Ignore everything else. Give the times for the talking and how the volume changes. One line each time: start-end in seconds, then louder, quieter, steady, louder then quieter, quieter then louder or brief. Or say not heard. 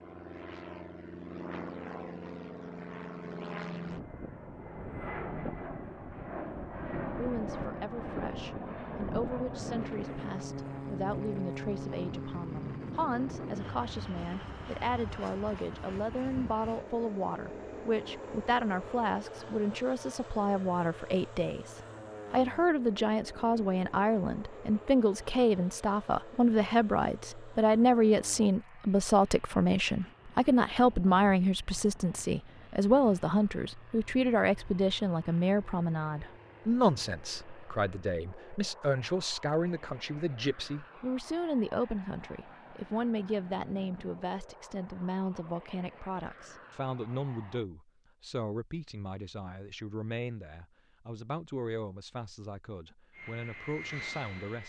7.2-54.6 louder then quieter.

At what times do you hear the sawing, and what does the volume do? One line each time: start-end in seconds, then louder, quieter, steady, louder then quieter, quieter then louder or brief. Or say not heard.
not heard.